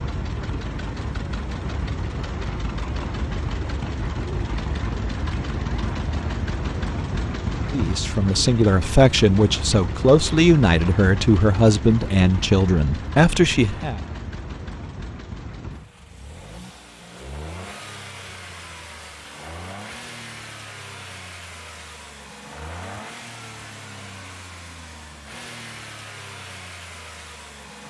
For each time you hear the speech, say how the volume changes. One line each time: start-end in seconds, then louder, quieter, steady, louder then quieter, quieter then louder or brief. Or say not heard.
7.7-14.0 steady.